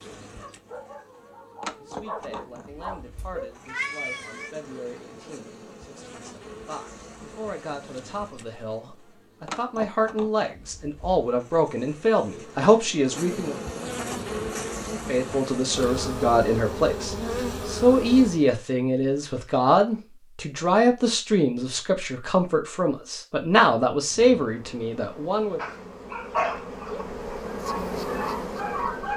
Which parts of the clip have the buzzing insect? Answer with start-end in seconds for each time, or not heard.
0.0-18.4, 24.0-29.1.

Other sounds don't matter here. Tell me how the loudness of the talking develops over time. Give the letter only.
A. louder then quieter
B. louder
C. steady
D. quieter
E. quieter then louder
B.